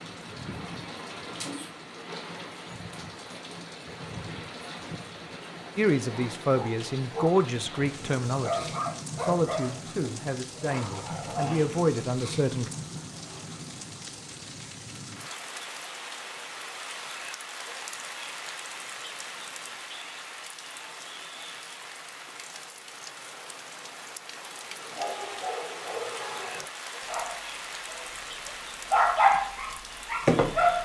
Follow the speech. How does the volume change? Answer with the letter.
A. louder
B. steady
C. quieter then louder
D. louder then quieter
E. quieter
C.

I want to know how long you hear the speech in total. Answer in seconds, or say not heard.
7 s.